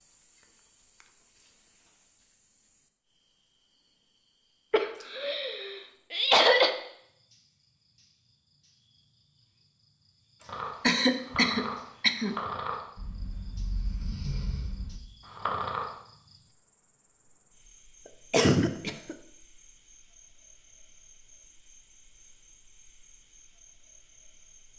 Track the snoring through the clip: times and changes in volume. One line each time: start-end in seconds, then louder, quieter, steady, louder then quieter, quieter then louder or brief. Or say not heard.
10.4-16.0 quieter then louder.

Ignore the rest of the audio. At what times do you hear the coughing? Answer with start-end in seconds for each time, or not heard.
4.7-6.7, 10.8-12.3, 18.3-19.1.